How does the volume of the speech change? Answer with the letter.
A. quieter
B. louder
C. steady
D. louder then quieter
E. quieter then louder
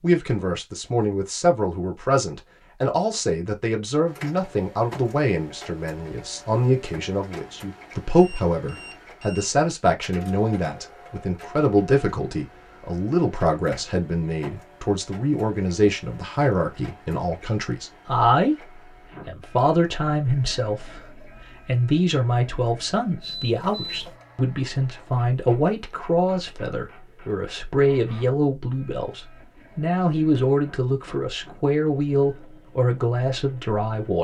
C.